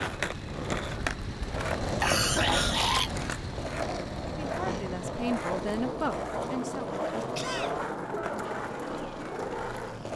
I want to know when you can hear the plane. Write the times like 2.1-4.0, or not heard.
0.0-10.1.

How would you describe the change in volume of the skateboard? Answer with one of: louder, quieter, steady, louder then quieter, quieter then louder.
steady.